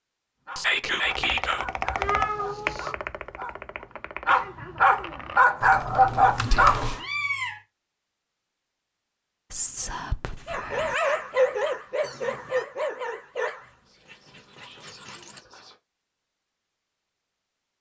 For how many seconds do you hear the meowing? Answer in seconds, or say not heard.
2 s.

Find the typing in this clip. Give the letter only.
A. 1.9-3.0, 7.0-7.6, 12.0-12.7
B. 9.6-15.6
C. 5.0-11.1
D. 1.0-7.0
D.